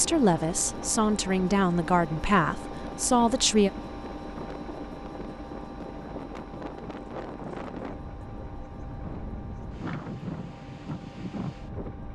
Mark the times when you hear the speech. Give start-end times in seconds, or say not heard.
0.0-3.7.